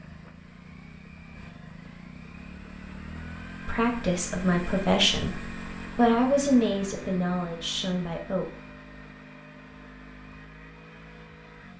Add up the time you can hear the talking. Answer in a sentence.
The talking can be heard for 5 seconds in total.